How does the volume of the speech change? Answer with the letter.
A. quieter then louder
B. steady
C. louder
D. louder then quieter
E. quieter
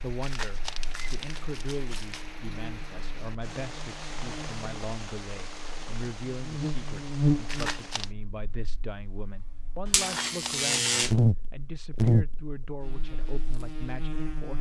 B.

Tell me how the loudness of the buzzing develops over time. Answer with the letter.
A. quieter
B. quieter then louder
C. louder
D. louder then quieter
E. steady
C.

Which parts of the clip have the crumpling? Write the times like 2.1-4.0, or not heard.
0.2-2.3, 7.5-8.1, 9.9-10.7.